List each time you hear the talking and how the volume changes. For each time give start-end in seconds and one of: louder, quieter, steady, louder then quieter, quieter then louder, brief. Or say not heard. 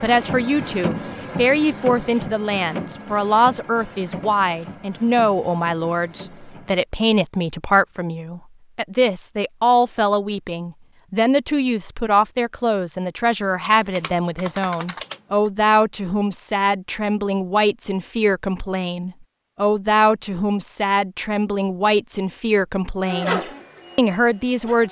0.0-24.8 steady.